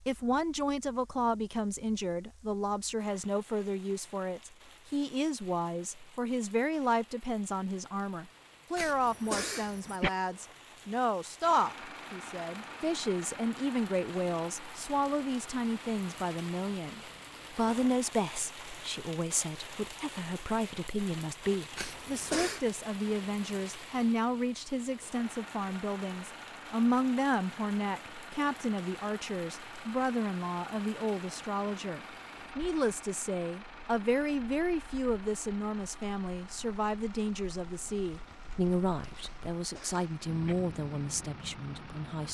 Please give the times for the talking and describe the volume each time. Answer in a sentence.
You can hear the talking from 0.1 to 42.3 s, at a steady volume.